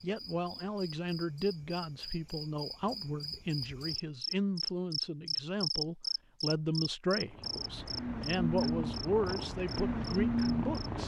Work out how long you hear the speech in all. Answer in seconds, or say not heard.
11 s.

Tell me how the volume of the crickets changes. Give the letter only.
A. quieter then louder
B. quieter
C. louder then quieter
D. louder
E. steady
C.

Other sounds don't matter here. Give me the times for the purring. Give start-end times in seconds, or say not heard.
7.2-11.0.